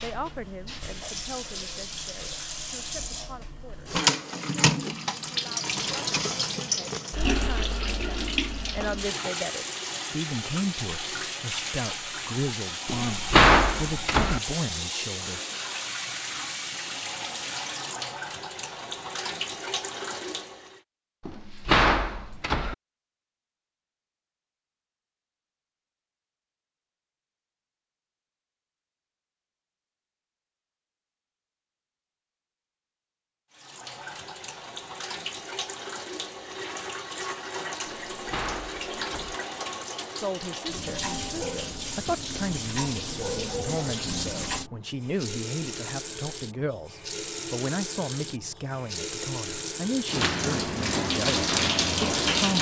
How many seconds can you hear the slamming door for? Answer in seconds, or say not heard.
4 s.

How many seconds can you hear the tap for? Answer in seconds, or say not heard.
40 s.